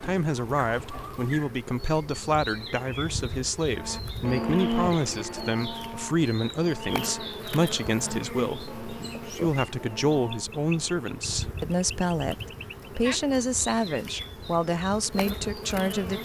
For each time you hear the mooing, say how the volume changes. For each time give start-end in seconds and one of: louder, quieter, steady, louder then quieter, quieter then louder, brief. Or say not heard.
3.7-10.4 quieter.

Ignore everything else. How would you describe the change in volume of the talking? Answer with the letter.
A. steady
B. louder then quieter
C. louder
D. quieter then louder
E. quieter
A.